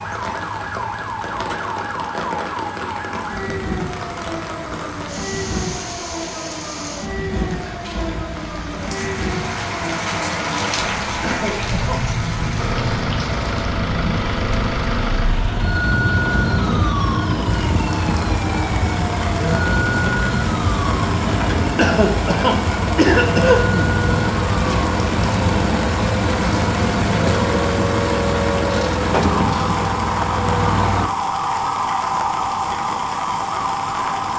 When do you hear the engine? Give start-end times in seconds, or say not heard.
12.6-31.1.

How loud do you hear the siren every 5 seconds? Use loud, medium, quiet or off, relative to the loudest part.
medium, medium, medium, loud, loud, loud, loud.